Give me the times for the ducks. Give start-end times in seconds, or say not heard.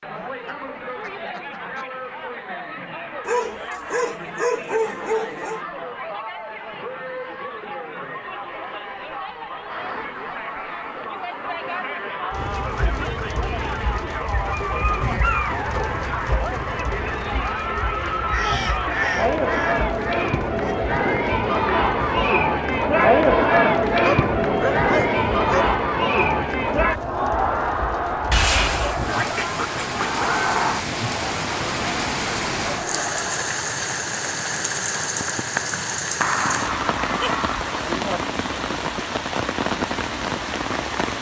0.4-1.9, 9.7-12.2, 18.3-20.8, 28.3-30.2, 36.2-37.8.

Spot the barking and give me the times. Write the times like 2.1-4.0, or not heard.
3.2-5.6, 14.5-15.9, 24.0-25.8, 37.1-38.7.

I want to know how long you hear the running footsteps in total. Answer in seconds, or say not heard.
not heard.